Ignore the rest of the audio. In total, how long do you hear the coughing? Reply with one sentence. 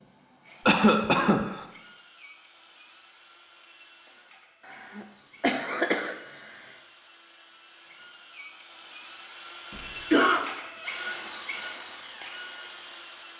You can hear the coughing for 3 seconds altogether.